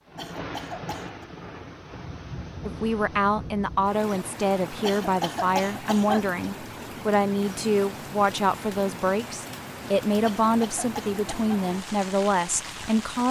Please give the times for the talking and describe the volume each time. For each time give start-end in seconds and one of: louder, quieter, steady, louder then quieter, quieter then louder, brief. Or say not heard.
2.6-13.2 steady.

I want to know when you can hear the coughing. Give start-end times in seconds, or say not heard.
0.1-1.2, 4.8-6.2, 10.2-11.6.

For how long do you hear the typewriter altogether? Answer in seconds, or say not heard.
not heard.